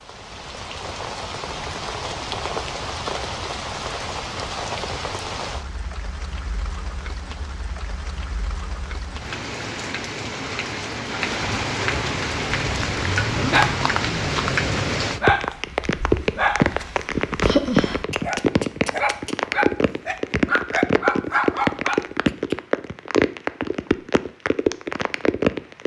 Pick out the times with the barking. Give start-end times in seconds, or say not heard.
12.6-22.6.